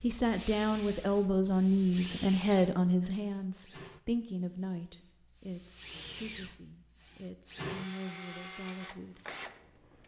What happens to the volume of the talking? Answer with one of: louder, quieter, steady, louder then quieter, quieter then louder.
quieter.